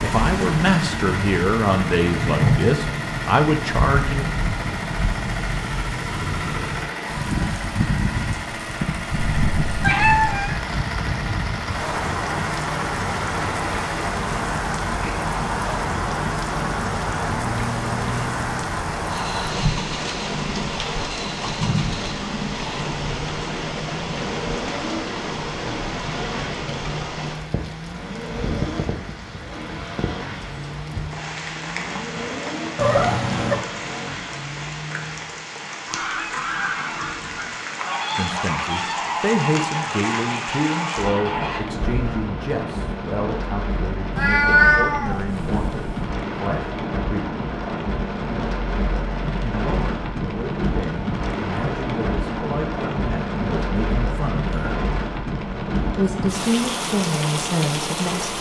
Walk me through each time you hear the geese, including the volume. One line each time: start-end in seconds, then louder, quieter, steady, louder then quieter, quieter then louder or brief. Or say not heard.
35.9-42.2 steady.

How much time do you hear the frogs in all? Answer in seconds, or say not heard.
not heard.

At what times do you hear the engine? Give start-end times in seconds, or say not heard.
0.0-35.5.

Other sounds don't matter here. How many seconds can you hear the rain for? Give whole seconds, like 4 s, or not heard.
58 s.